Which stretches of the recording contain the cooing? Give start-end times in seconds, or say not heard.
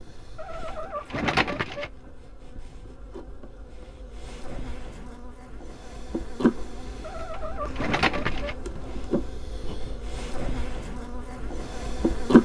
0.3-1.9, 7.0-8.6.